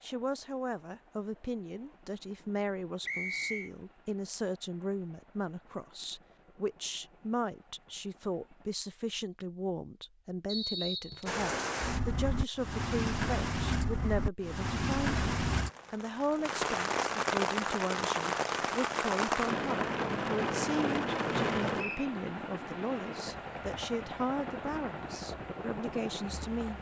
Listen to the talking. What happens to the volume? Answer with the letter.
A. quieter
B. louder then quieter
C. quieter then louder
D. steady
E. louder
D.